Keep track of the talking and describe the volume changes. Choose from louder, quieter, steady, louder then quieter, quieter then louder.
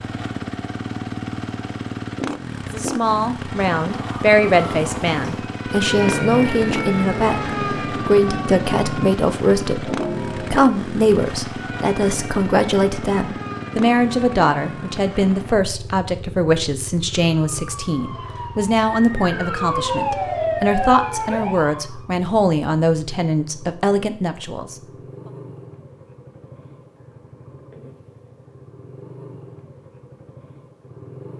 steady.